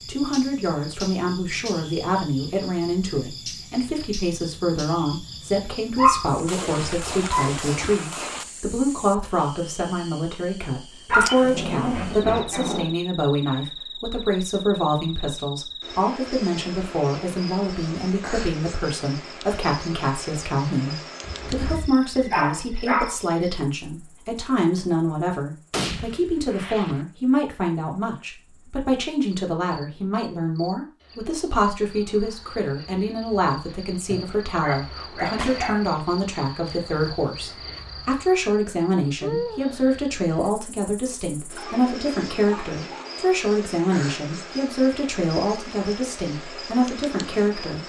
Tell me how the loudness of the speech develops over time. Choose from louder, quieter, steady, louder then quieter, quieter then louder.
steady.